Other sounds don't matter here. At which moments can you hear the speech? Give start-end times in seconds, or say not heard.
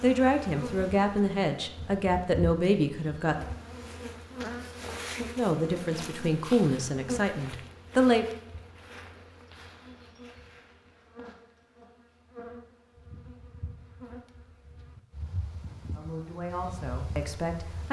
0.0-3.4, 5.3-8.2, 15.9-17.8.